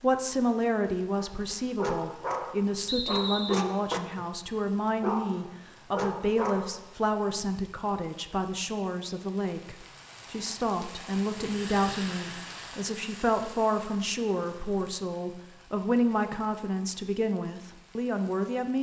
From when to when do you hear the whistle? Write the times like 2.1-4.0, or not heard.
2.9-3.6.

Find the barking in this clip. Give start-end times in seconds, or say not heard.
1.1-4.2, 5.0-6.8.